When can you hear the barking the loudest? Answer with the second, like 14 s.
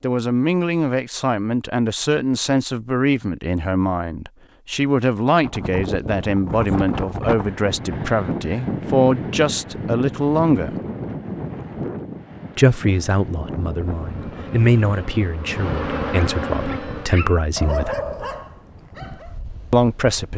18 s.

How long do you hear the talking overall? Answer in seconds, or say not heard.
17 s.